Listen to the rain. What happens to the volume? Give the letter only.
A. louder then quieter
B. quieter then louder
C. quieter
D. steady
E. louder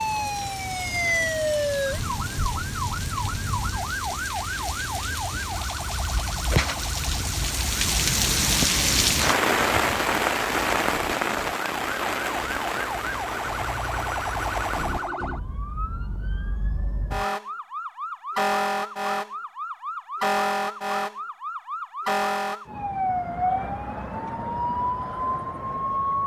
A.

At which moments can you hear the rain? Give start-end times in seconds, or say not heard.
0.0-15.1.